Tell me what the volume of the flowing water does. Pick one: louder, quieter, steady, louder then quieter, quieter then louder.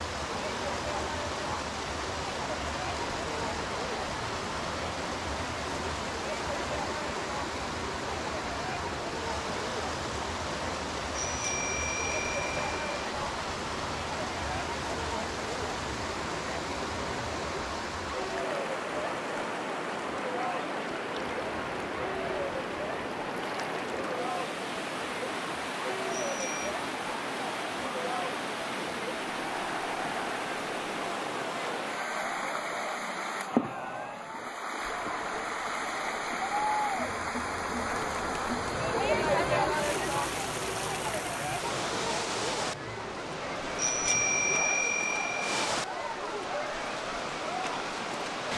steady.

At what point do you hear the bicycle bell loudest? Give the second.
44 s.